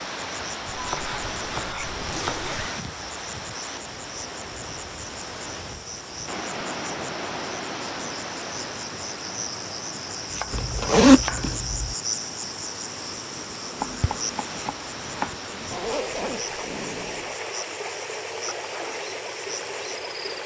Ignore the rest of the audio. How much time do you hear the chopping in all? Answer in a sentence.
You can hear the chopping for 5 seconds altogether.